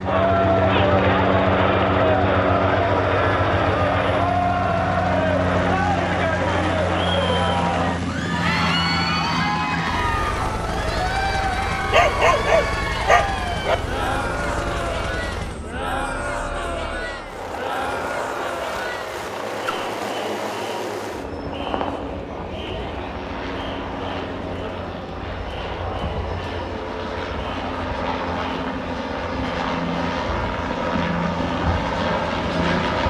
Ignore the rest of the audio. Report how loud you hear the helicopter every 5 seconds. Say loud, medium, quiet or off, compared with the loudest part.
loud, loud, medium, medium, medium, medium, loud.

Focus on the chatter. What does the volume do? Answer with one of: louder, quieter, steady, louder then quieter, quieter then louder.
quieter.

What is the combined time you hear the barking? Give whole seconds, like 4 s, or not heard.
2 s.